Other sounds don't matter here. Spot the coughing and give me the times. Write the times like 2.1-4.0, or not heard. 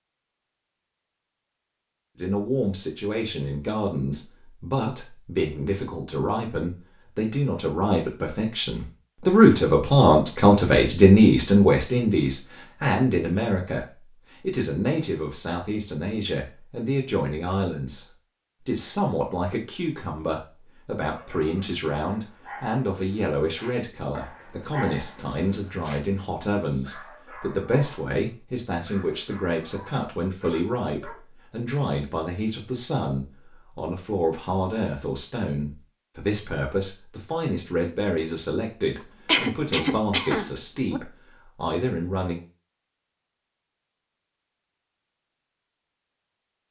39.2-41.0.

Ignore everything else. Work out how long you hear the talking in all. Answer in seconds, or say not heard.
40 s.